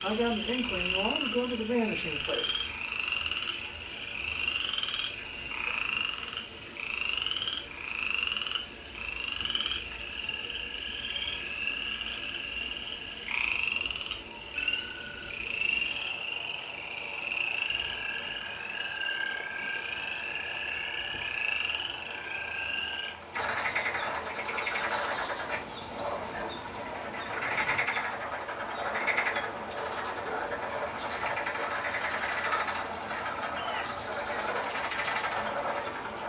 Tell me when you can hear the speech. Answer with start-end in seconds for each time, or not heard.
0.0-2.5.